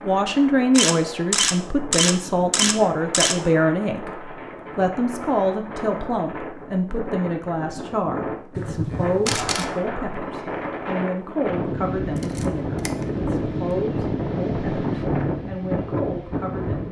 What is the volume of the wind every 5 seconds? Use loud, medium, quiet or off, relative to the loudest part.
medium, medium, loud, loud.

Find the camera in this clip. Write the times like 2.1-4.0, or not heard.
0.8-3.4, 8.6-9.7, 12.2-13.1.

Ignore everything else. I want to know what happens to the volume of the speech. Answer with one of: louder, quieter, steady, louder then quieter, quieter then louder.
quieter.